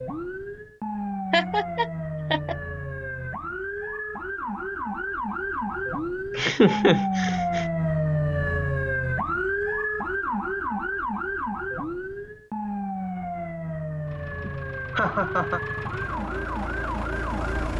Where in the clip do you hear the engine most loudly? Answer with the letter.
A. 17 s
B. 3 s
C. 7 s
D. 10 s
A.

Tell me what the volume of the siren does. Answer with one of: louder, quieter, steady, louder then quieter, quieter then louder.
louder then quieter.